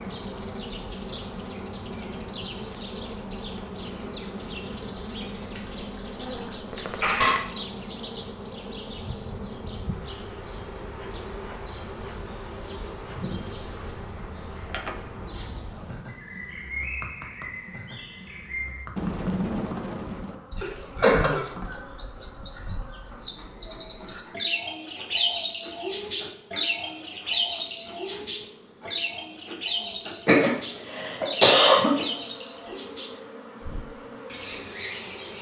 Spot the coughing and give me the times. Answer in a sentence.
The coughing can be heard from 5.5 to 7.3 s, from 20.6 to 21.4 s and from 30.2 to 32.0 s.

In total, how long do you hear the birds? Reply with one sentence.
The birds can be heard for 35 seconds in total.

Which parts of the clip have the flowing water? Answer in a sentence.
You can't hear the flowing water here.